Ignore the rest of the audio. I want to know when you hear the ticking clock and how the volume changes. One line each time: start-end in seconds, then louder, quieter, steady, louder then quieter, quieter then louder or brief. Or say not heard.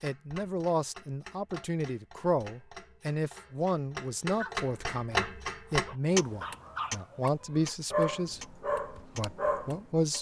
0.0-10.1 louder then quieter.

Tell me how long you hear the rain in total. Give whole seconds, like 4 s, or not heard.
not heard.